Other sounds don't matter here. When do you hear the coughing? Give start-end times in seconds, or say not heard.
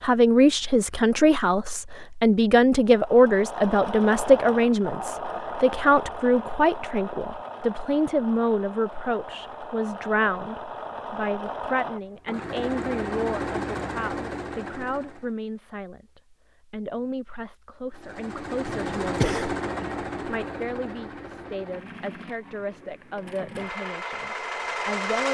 18.6-19.6.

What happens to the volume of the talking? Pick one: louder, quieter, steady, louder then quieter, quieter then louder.
quieter.